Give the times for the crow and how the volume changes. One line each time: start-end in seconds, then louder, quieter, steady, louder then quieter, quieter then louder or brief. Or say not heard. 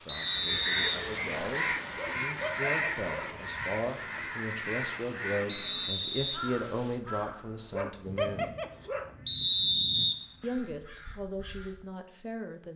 0.1-11.9 quieter.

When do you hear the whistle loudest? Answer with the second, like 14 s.
10 s.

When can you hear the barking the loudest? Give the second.
8 s.